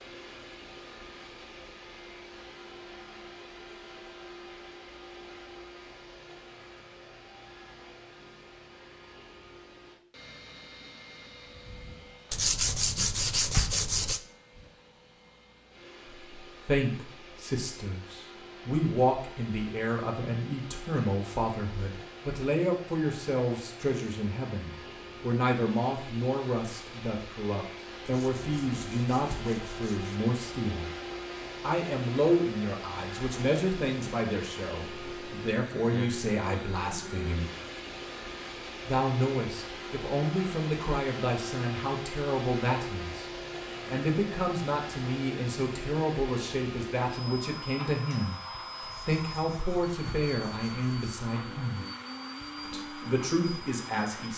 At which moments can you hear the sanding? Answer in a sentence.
You can hear the sanding from 12.3 to 14.2 s, from 28.1 to 30.2 s and from 48.8 to 51.1 s.